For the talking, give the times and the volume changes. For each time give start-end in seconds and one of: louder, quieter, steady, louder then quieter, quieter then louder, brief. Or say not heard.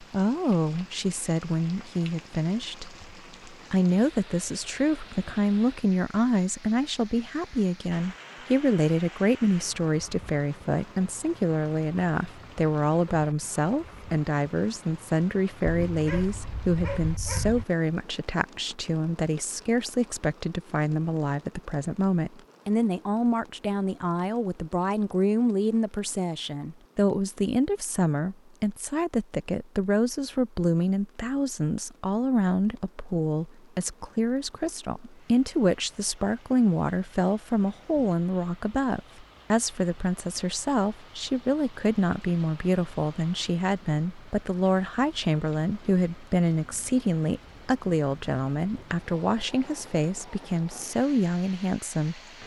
0.0-52.2 steady.